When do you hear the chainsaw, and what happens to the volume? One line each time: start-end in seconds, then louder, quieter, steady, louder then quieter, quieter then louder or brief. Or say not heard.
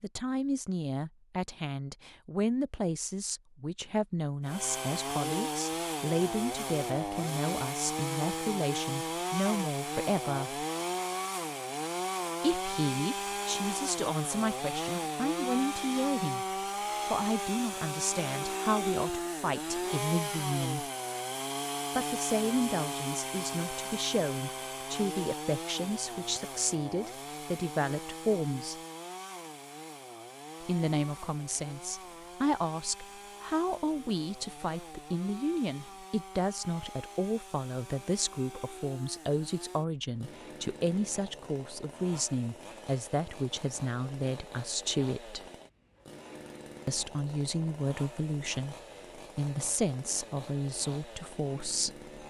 4.5-52.2 quieter.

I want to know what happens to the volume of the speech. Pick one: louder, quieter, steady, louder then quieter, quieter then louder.
steady.